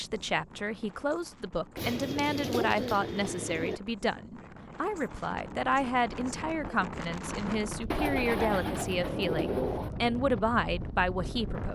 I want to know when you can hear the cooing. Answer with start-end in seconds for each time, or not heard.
1.8-3.8, 7.9-9.9.